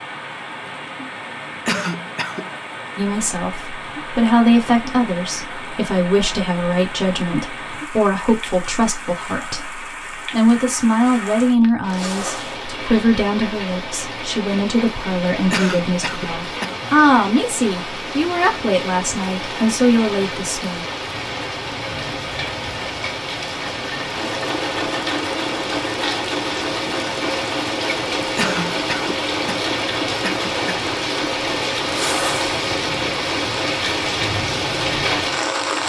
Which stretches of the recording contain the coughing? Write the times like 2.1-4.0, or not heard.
1.6-2.5, 15.5-16.9, 28.4-30.9.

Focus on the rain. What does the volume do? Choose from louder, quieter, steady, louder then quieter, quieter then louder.
louder.